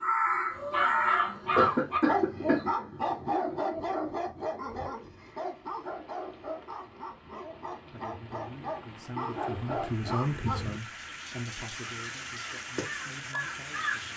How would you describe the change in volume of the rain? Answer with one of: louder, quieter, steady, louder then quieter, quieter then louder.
louder.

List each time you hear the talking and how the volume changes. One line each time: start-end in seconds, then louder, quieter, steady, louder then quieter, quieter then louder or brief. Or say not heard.
7.9-14.1 louder then quieter.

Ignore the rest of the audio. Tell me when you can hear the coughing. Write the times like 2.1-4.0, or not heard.
1.6-2.6.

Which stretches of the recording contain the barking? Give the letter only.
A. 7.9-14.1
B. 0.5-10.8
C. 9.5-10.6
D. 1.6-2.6
B.